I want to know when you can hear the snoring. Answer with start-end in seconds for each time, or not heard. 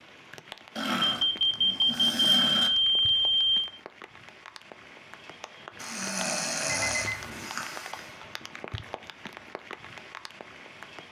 0.8-2.7, 5.8-8.2.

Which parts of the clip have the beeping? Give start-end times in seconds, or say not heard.
1.0-3.8, 6.7-7.5.